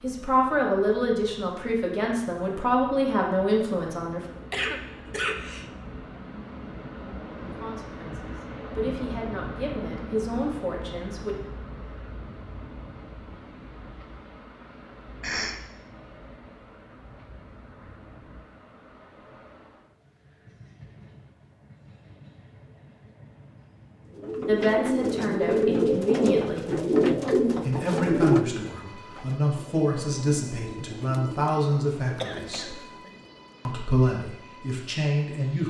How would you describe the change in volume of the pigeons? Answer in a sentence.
The loudness of the pigeons goes down.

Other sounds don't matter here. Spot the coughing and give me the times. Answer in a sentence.
You can hear the coughing from 4.5 to 5.7 s, from 15.2 to 15.6 s and from 32.2 to 33.1 s.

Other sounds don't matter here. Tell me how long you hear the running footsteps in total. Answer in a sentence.
The running footsteps can't be heard in this clip.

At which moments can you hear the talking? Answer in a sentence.
You can hear the talking from 0.0 to 4.2 s, from 7.4 to 11.3 s, from 24.4 to 26.7 s, from 27.6 to 32.8 s and from 33.6 to 35.6 s.